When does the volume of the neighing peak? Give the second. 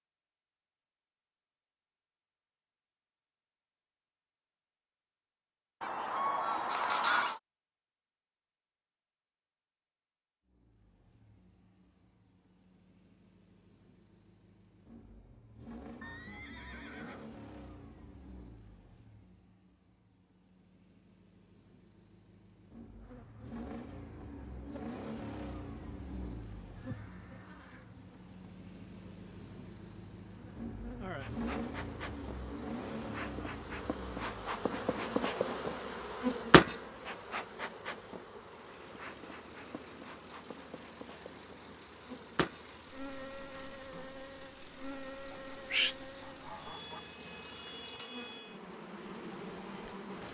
16 s.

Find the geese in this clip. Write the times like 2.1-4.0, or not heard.
5.8-7.4, 45.3-47.0.